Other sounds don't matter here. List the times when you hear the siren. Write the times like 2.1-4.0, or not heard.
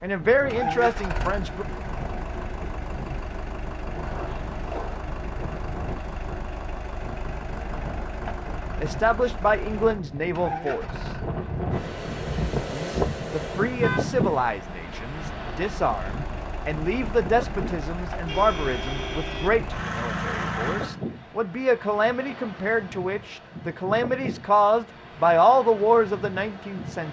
not heard.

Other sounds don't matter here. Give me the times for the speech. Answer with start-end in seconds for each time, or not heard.
0.0-1.6, 8.8-11.1, 12.7-27.0.